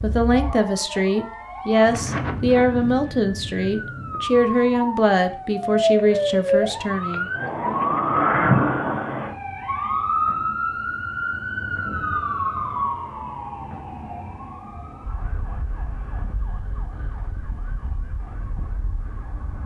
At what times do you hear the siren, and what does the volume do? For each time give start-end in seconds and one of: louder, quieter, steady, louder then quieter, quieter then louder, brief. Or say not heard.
0.0-19.6 louder then quieter.